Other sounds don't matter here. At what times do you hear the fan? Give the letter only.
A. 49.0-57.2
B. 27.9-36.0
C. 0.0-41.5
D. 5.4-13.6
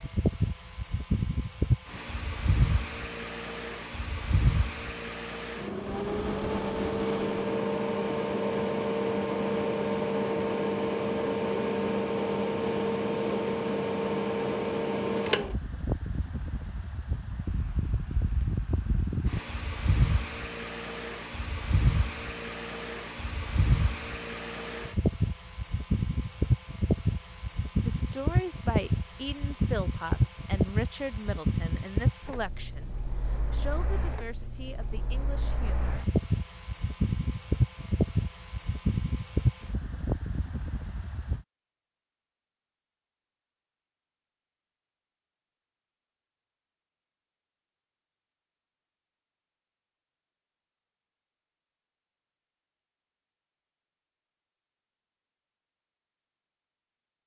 C.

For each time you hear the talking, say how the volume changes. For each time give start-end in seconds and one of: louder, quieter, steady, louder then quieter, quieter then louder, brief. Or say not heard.
27.9-36.0 quieter.